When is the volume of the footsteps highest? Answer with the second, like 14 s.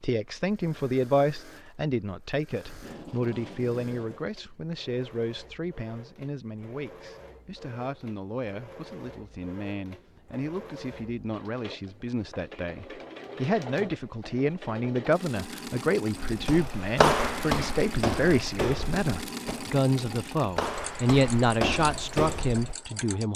17 s.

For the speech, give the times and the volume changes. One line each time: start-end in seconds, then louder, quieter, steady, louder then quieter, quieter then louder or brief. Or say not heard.
0.0-23.3 quieter then louder.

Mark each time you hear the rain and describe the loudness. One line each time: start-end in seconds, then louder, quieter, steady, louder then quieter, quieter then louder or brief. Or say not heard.
not heard.